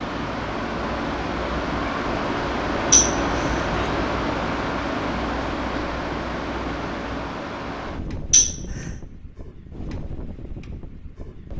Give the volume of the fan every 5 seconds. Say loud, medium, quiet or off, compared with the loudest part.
loud, medium, quiet.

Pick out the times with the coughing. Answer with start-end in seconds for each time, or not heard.
2.9-3.8, 8.3-8.9.